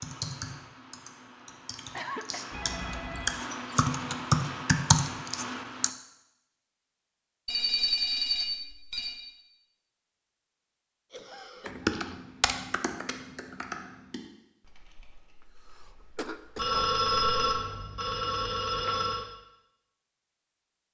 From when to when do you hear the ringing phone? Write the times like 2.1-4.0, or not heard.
2.5-3.5, 7.5-9.2, 16.6-19.2.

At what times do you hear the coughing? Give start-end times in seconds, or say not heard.
1.9-2.4, 11.1-12.2, 15.7-16.9.